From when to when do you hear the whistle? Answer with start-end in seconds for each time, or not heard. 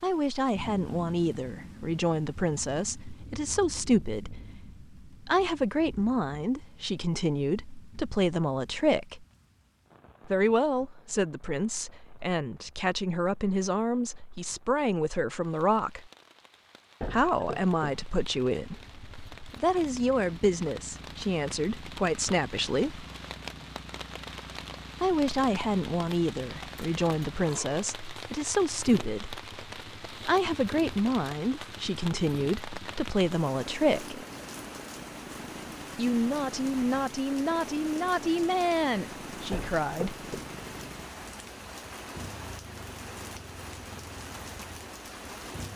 not heard.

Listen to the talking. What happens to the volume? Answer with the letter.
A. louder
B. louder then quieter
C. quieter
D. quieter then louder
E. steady
E.